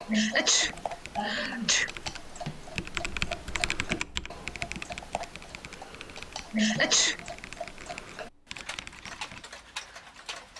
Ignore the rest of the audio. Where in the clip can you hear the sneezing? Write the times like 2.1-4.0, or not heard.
0.1-1.9, 6.5-7.2.